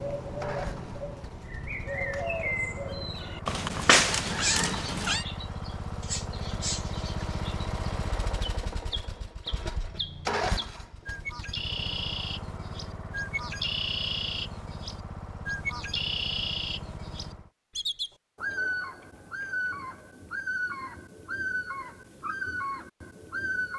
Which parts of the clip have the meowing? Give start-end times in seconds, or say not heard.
3.5-5.2.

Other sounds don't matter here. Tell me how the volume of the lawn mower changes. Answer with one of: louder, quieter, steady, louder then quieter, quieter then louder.
louder then quieter.